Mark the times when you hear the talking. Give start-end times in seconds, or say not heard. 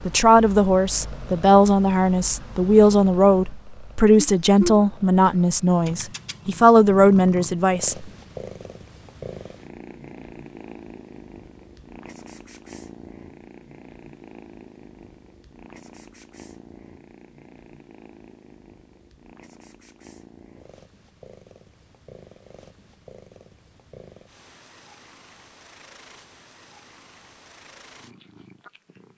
0.1-8.1.